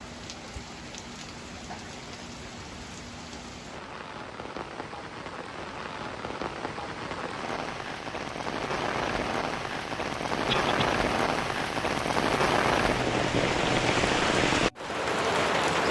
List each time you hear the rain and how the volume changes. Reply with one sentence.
The rain can be heard from 0.0 to 15.8 s, getting louder.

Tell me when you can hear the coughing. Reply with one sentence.
You can hear the coughing from 10.4 to 10.9 s.